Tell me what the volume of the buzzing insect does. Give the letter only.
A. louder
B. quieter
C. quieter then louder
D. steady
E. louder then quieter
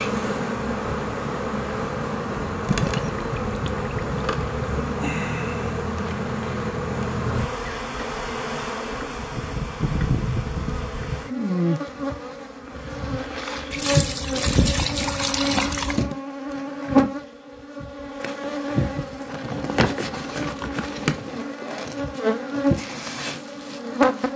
D.